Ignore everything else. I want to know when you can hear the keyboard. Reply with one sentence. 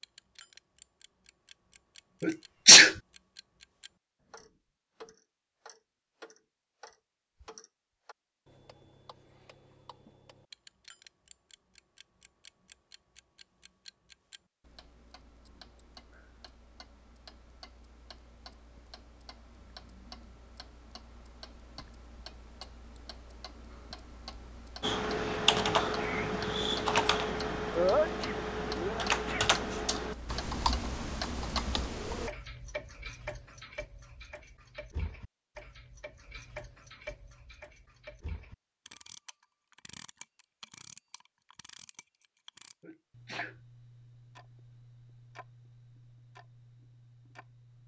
The keyboard can be heard from 24.8 to 32.3 s.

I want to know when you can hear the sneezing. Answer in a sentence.
The sneezing can be heard from 2.2 to 2.9 s, from 27.7 to 29.4 s and from 42.8 to 43.5 s.